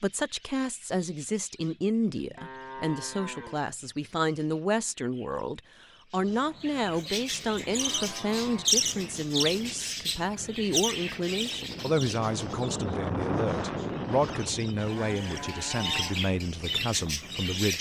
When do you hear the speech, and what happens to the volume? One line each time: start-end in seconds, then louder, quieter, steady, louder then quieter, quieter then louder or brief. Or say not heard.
0.0-17.7 steady.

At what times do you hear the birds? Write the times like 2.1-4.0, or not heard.
0.1-17.7.